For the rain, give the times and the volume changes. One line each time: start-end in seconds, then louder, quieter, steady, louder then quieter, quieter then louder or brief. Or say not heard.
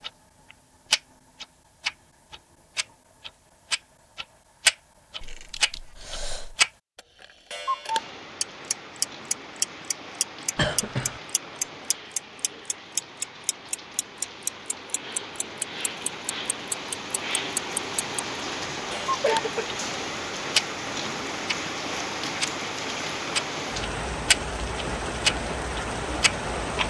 7.8-26.8 louder.